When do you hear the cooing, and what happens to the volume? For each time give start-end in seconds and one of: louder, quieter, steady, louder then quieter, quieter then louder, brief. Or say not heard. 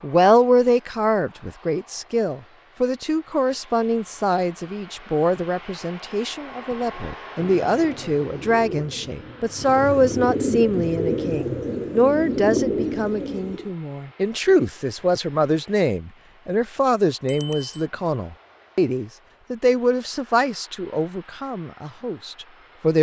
6.8-13.7 louder.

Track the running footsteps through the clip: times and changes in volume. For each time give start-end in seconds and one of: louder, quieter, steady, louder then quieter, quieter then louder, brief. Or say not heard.
not heard.